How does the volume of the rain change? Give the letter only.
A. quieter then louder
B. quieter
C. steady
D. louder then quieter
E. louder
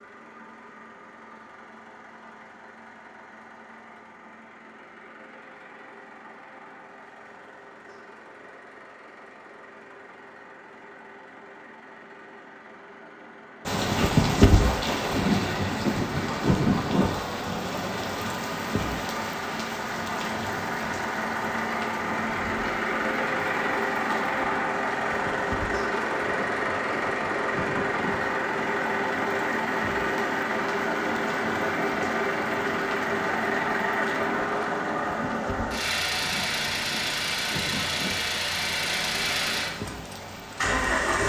B.